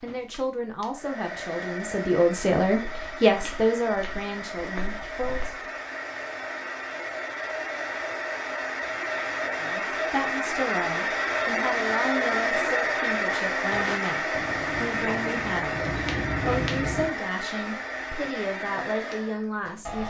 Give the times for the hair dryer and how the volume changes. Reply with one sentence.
The hair dryer can be heard from 0.0 to 20.0 s, getting louder then quieter.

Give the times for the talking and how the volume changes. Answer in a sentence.
The talking can be heard from 0.0 to 5.7 s, getting louder then quieter; and from 9.6 to 20.0 s, at a steady volume.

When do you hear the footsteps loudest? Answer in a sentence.
The loudest moment of the footsteps is at 17 seconds.